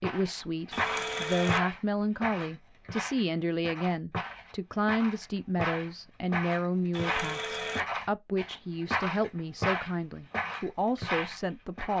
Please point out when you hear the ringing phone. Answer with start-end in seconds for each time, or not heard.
0.7-1.6, 6.9-7.8.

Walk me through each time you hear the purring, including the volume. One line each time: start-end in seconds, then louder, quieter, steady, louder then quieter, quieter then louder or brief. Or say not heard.
not heard.